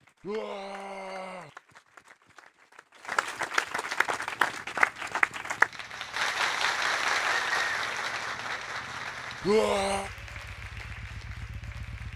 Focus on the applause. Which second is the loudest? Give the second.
5 s.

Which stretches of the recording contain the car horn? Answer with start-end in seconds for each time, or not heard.
not heard.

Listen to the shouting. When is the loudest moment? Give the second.
10 s.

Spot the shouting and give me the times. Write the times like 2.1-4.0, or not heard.
0.2-1.5, 9.4-10.1.